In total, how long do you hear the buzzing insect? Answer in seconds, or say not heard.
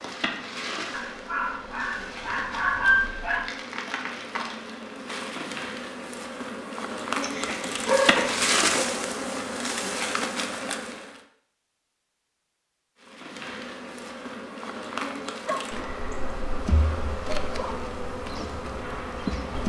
18 s.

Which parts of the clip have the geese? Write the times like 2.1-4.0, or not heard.
not heard.